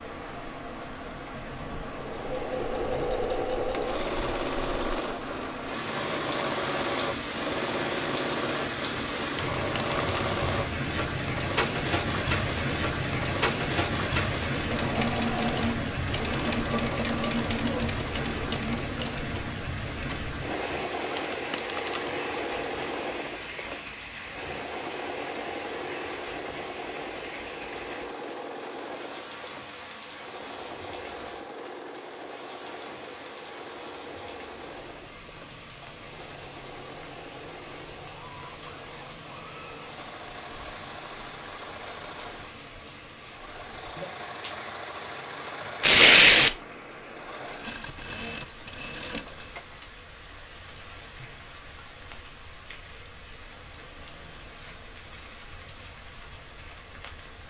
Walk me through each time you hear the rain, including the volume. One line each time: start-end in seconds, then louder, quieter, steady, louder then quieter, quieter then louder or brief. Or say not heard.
0.0-57.4 quieter.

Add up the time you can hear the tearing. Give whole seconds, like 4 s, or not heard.
3 s.